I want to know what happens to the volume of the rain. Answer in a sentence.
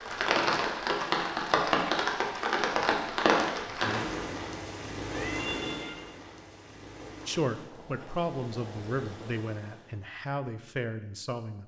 The volume of the rain goes down.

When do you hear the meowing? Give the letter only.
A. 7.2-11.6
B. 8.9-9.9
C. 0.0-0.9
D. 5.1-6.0
D.